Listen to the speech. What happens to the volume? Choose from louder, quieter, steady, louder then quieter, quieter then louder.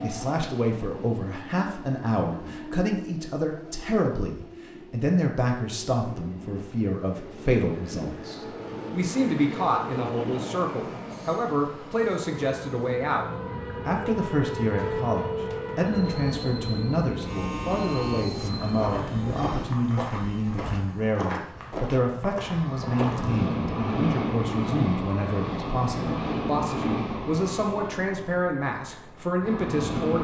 steady.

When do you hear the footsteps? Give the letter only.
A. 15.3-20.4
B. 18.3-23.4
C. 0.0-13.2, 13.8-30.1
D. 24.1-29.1
B.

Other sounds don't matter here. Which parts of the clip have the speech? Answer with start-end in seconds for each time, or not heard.
0.0-13.2, 13.8-30.1.